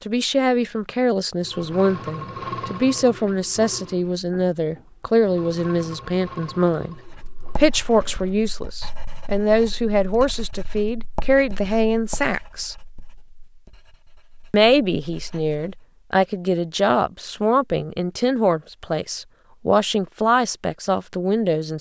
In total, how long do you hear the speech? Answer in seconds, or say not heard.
19 s.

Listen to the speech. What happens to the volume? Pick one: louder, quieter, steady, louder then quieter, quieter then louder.
steady.